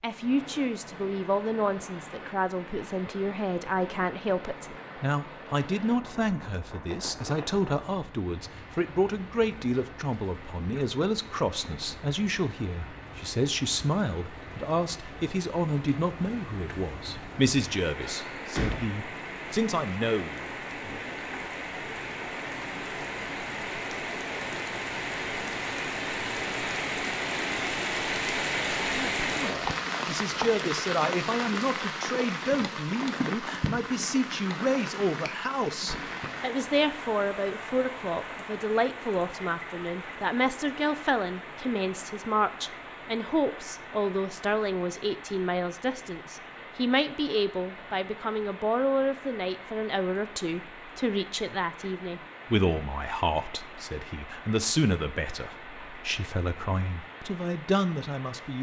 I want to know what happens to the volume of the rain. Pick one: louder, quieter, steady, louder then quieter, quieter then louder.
louder then quieter.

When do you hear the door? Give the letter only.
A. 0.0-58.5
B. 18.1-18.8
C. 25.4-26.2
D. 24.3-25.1
B.